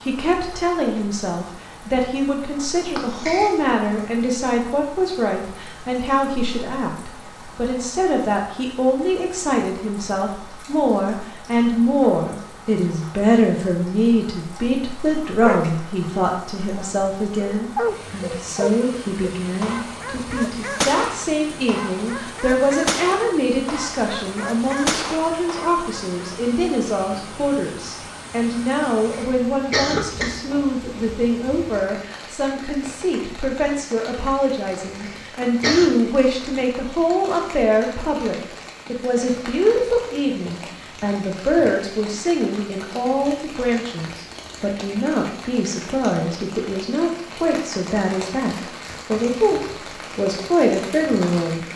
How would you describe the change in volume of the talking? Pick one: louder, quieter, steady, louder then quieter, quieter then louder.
steady.